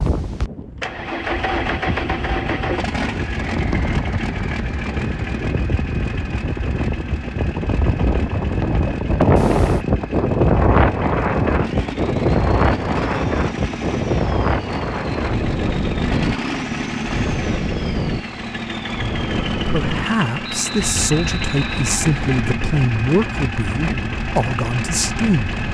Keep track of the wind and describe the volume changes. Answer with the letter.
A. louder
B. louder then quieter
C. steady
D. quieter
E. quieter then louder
B.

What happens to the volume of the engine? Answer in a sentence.
The volume of the engine goes down, then up.